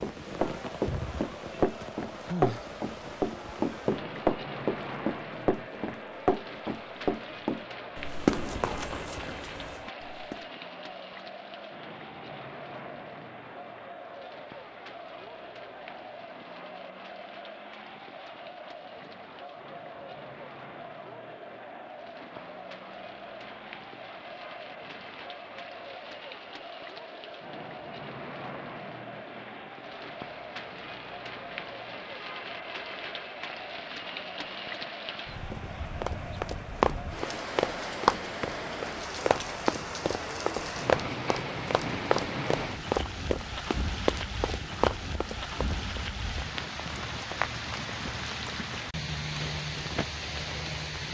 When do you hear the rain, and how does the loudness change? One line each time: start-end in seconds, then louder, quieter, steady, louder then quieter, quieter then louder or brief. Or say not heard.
0.0-51.0 quieter then louder.